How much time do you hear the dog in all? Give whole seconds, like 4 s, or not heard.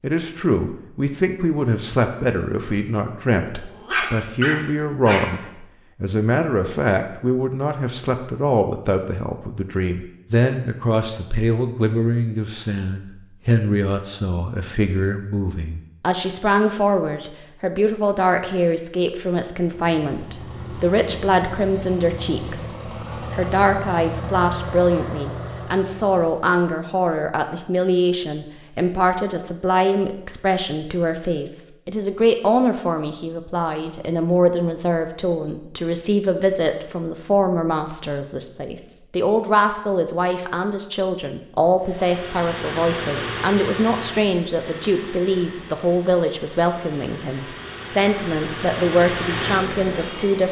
2 s.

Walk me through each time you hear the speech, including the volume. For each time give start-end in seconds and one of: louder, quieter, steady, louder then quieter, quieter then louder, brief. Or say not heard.
0.0-50.4 steady.